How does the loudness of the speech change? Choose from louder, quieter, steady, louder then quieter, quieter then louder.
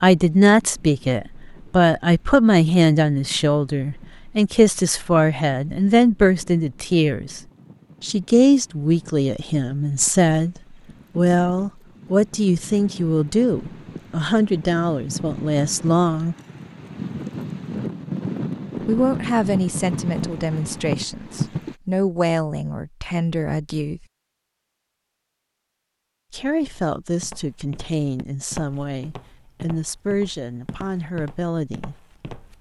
quieter.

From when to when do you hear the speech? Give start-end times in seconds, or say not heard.
0.0-7.4, 8.0-16.4, 18.9-24.1, 26.3-31.9.